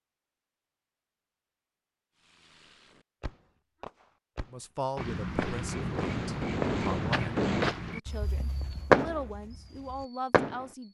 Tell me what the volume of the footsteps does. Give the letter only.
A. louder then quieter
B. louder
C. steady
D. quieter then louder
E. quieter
E.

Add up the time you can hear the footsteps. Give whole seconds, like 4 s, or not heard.
5 s.